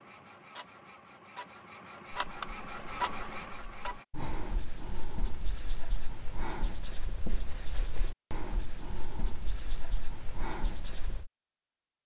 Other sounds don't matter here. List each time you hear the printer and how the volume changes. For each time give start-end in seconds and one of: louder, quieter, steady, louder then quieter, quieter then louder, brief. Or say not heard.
0.0-4.0 louder.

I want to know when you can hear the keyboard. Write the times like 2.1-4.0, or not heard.
not heard.